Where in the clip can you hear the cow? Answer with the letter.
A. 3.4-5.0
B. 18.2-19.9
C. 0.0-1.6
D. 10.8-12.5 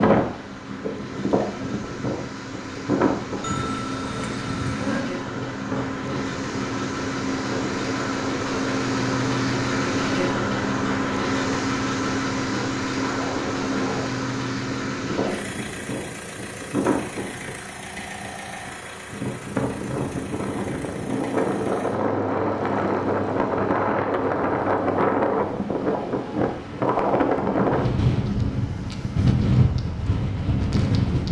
A.